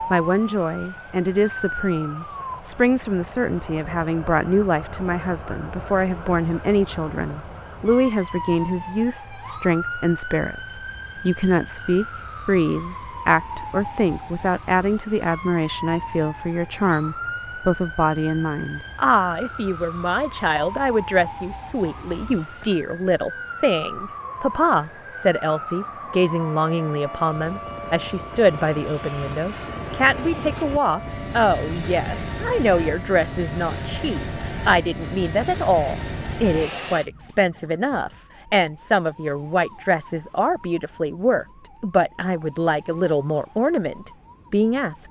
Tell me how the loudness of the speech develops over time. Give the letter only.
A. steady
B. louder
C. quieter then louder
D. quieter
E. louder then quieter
A.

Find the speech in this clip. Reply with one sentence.
You can hear the speech from 0.1 to 45.0 s.